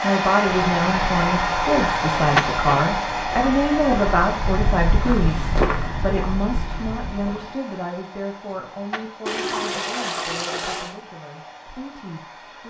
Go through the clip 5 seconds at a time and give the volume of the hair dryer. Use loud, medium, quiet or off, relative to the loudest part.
loud, quiet, quiet.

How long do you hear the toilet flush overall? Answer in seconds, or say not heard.
2 s.